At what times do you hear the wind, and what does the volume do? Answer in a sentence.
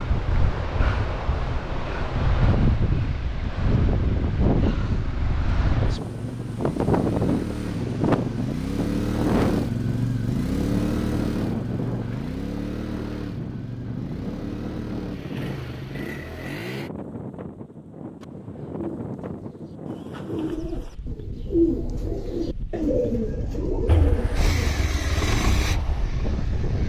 You can hear the wind from 0.0 to 26.8 s, getting quieter.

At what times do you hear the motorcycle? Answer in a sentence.
The motorcycle can be heard from 0.0 to 16.9 s and from 23.9 to 26.8 s.